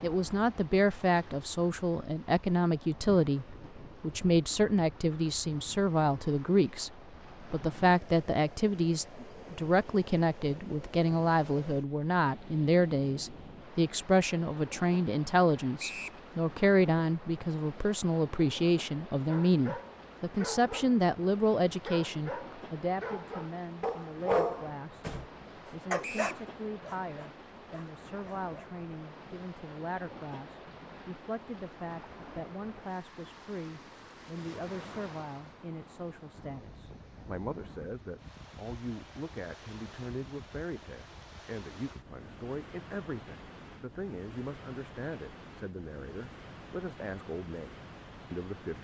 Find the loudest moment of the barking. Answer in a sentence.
The loudest moment of the barking is at 24 seconds.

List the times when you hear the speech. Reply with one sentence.
You can hear the speech from 0.0 to 25.1 s and from 25.7 to 48.7 s.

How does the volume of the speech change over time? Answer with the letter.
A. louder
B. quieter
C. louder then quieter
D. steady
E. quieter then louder
B.